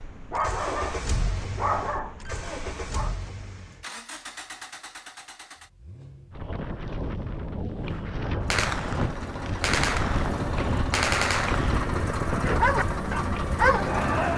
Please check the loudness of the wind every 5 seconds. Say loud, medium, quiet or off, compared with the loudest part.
off, loud, loud.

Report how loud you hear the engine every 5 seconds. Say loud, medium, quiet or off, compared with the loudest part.
medium, medium, loud.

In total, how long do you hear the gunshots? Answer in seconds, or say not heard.
3 s.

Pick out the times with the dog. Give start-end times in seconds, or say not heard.
0.0-3.1, 12.2-14.3.